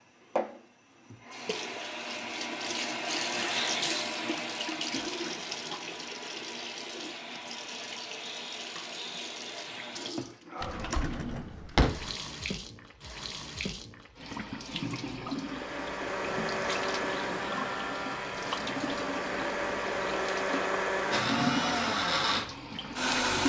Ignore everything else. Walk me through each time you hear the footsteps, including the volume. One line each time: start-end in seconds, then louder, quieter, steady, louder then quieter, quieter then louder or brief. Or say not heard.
not heard.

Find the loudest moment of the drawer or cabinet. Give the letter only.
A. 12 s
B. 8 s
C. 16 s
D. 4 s
A.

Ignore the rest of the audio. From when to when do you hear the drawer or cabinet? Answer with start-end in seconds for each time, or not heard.
10.6-12.1.